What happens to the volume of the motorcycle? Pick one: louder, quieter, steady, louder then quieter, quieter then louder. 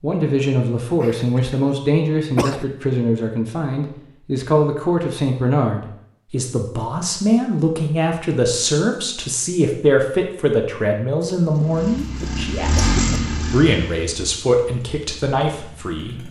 louder then quieter.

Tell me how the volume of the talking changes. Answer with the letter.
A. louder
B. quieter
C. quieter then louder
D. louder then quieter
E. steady
E.